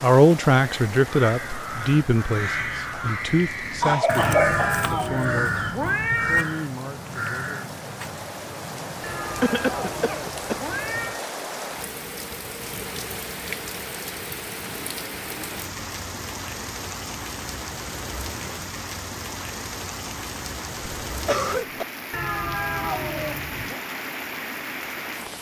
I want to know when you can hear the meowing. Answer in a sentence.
You can hear the meowing from 4.2 to 6.5 s, from 9.0 to 11.2 s and from 22.1 to 23.8 s.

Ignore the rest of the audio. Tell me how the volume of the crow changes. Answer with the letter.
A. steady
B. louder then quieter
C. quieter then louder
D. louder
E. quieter
B.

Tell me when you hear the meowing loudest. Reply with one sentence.
The volume of the meowing peaks at 6 seconds.